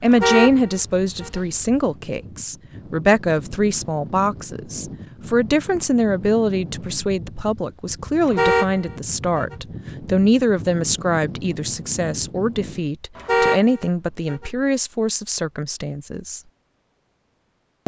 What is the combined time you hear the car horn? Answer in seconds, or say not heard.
4 s.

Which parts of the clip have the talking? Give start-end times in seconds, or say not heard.
0.0-16.4.